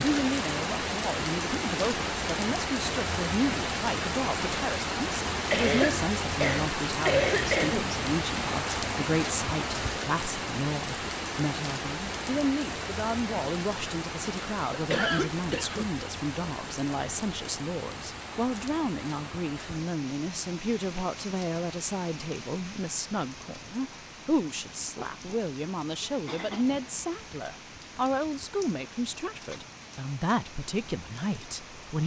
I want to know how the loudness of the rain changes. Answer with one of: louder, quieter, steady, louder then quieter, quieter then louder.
quieter.